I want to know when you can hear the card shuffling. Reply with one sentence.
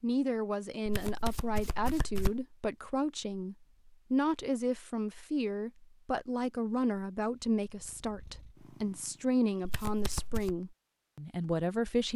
The card shuffling can be heard from 0.8 to 2.5 s and from 9.6 to 10.6 s.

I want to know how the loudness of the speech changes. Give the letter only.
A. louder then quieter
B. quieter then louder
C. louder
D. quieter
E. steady
E.